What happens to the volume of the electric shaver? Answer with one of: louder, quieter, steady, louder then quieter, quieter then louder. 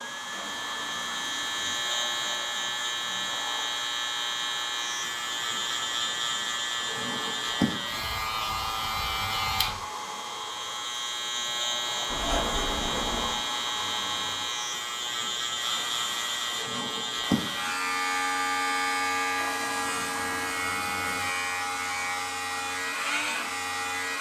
steady.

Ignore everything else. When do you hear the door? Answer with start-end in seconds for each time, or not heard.
12.1-13.4.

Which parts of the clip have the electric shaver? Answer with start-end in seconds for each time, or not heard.
0.0-24.1.